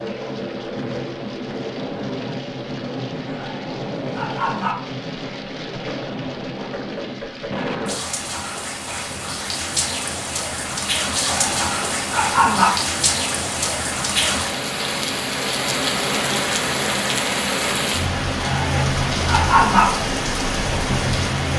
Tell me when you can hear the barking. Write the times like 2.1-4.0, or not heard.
3.2-4.8, 11.2-12.7, 18.4-19.9.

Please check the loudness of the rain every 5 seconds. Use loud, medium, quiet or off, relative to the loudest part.
medium, medium, loud, loud, loud.